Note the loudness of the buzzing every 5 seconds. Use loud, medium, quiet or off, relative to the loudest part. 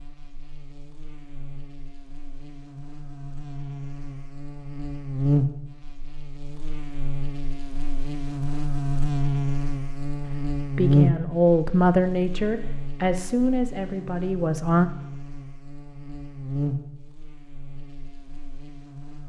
quiet, loud, loud, medium.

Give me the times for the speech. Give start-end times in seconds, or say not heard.
10.6-14.9.